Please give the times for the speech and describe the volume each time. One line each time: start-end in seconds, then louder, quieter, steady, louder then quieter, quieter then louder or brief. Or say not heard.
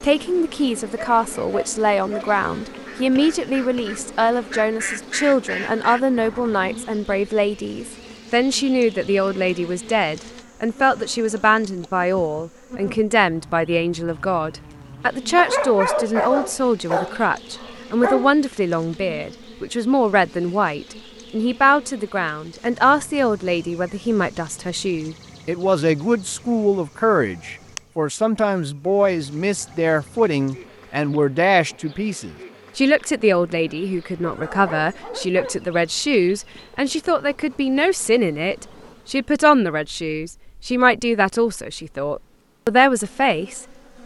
0.0-44.0 steady.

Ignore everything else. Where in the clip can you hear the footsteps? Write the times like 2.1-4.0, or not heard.
not heard.